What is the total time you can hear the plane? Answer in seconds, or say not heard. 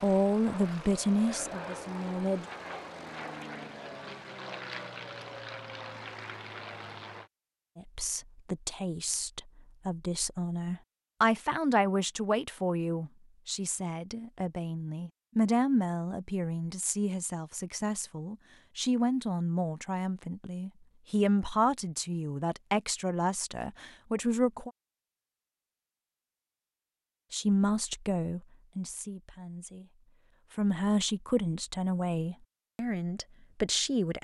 7 s.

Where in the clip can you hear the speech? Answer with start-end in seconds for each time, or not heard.
0.0-2.5, 7.8-24.7, 27.3-34.1.